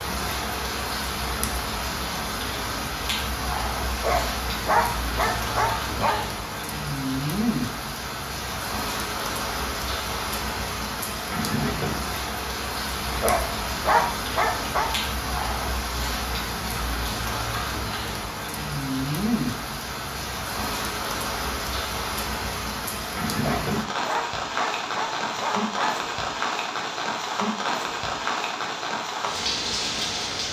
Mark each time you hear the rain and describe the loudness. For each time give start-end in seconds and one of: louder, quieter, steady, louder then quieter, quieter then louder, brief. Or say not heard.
0.0-30.4 steady.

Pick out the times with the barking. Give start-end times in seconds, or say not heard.
4.0-6.3, 13.2-14.9, 23.4-26.0.